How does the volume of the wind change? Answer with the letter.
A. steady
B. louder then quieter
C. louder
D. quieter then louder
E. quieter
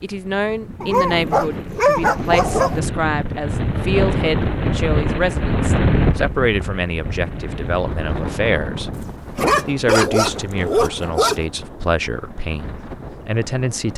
B.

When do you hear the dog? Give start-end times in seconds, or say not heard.
0.8-2.8, 8.9-11.4.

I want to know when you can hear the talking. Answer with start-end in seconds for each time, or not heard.
0.0-13.9.